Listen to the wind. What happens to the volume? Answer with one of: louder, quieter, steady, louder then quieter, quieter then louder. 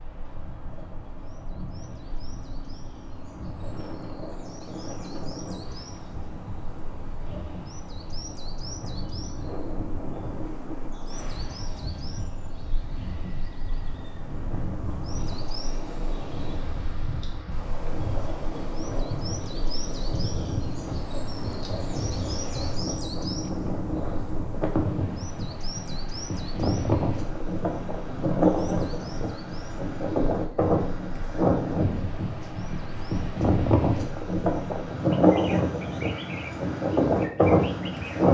louder.